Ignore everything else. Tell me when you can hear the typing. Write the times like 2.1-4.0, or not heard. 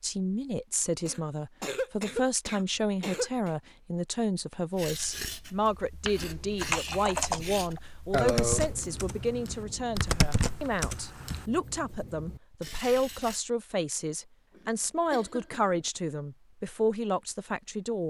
6.3-11.4.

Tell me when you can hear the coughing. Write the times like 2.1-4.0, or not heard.
1.1-3.5, 8.1-8.7, 14.6-15.7.